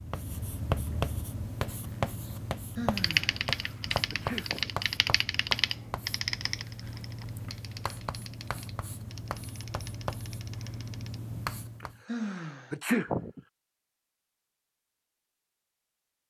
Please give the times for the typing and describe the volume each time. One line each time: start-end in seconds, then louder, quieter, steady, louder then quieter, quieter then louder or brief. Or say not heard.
3.0-11.2 quieter.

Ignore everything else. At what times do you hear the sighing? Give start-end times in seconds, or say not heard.
2.8-3.4, 12.1-12.7.